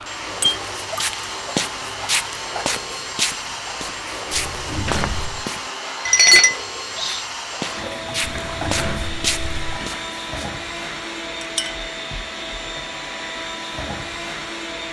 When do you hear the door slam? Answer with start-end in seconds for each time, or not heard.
4.3-5.5, 8.4-9.8.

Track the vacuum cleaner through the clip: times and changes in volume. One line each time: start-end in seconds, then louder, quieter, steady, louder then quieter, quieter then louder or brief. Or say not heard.
0.0-14.8 steady.